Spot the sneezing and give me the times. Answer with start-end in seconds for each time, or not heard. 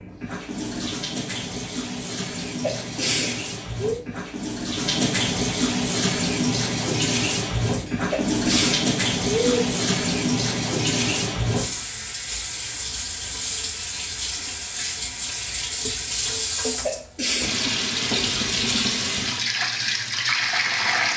2.6-4.0, 7.8-9.6, 16.6-17.6.